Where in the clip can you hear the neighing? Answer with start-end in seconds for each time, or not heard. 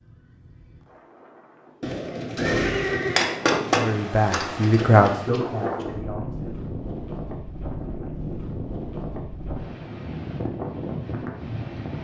1.8-3.6.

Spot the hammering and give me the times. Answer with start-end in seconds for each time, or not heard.
3.1-4.7.